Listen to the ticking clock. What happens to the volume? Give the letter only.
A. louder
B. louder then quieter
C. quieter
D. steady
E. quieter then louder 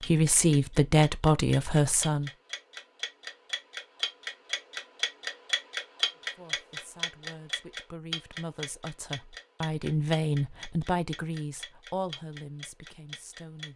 B.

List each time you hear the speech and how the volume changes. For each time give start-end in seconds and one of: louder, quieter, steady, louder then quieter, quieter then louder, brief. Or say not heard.
0.0-2.3 brief
6.3-13.7 louder then quieter.